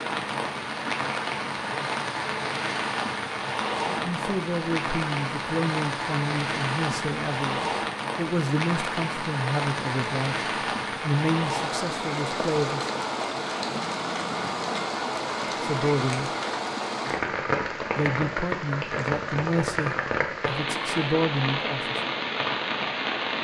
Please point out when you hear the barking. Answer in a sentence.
You can't hear the barking here.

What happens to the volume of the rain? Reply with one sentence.
The loudness of the rain stays about the same.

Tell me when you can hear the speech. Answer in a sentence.
The speech can be heard from 3.9 to 12.9 s, from 15.6 to 16.3 s and from 17.9 to 22.0 s.